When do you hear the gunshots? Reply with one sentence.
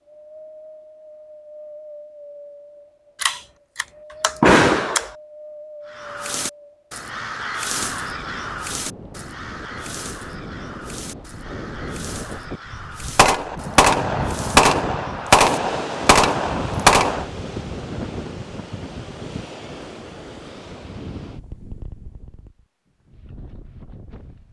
The gunshots can be heard from 3.2 to 5.1 s and from 13.2 to 17.2 s.